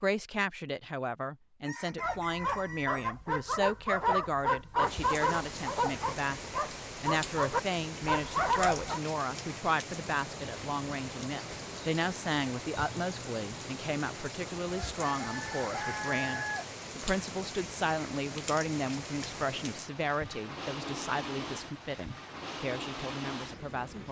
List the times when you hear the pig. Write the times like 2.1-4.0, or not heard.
not heard.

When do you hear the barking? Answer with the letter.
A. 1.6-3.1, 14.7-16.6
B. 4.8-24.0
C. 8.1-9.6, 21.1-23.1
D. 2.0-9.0
D.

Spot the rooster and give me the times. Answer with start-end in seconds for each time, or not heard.
1.6-3.1, 14.7-16.6.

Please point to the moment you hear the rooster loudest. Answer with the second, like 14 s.
16 s.